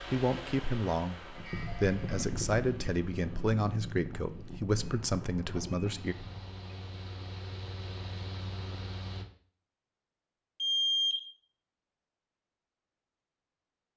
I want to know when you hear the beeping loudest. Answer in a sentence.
The loudest moment of the beeping is at 11 seconds.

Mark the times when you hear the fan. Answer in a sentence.
The fan can be heard from 0.0 to 9.2 s.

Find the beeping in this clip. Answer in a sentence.
The beeping can be heard from 1.4 to 2.2 s, from 4.7 to 6.8 s and from 10.6 to 11.3 s.